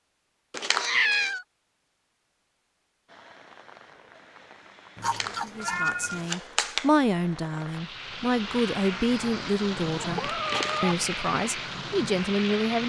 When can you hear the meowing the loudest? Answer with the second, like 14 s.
1 s.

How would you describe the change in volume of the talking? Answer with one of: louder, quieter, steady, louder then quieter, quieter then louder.
steady.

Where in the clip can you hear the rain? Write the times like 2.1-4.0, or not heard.
3.0-12.8.